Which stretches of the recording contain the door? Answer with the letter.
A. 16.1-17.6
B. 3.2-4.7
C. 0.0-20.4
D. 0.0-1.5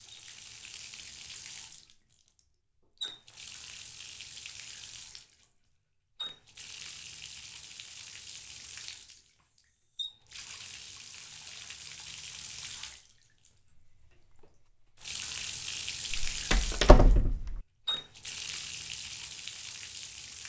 A.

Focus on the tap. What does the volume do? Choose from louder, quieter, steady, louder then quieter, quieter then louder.
louder.